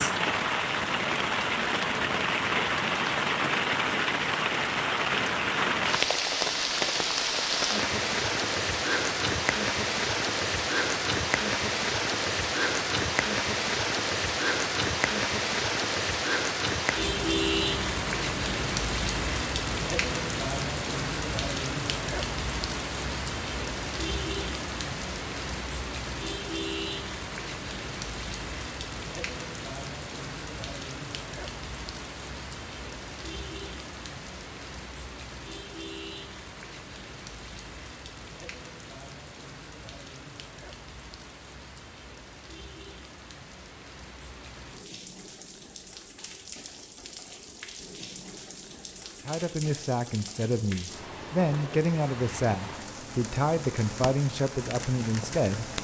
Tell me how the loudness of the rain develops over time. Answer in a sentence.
The loudness of the rain goes down.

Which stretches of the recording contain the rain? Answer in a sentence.
The rain can be heard from 0.0 to 55.7 s.